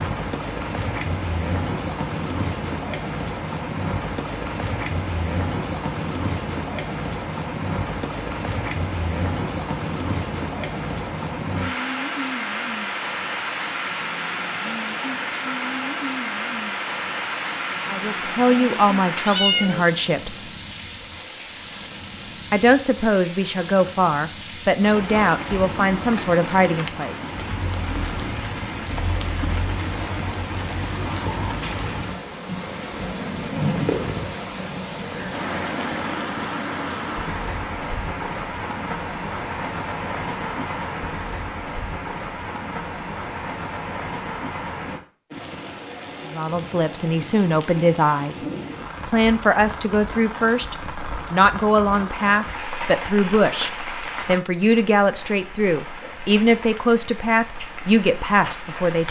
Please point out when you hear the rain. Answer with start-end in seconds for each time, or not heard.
0.0-59.0.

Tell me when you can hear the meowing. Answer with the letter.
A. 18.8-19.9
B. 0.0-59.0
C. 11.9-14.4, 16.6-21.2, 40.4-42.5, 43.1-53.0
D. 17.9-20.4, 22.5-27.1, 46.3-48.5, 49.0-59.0
A.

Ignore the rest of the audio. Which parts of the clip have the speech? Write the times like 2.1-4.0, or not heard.
17.9-20.4, 22.5-27.1, 46.3-48.5, 49.0-59.0.